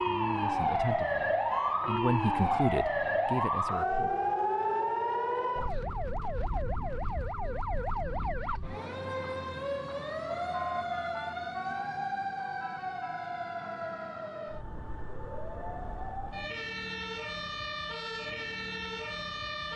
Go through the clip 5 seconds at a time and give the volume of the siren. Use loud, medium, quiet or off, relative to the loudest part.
loud, medium, medium, medium.